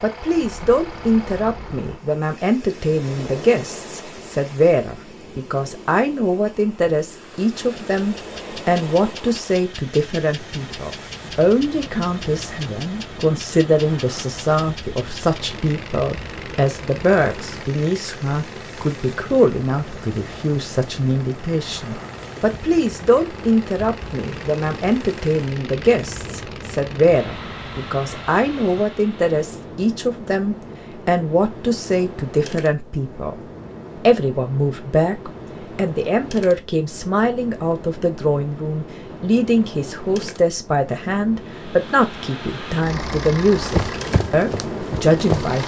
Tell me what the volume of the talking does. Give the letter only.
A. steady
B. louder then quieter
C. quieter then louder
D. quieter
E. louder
A.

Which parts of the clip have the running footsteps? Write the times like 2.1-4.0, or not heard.
43.6-45.6.